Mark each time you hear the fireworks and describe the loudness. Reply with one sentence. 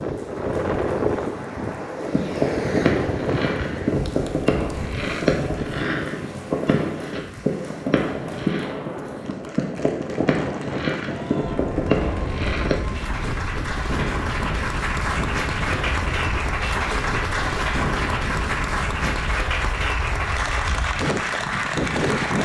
You can hear the fireworks from 1.9 to 12.8 s, at a steady volume.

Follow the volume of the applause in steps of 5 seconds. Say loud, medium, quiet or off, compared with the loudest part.
quiet, quiet, medium, loud, loud.